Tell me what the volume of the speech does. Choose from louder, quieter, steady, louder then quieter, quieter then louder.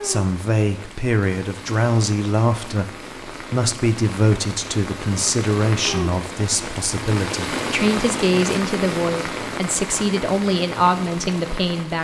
steady.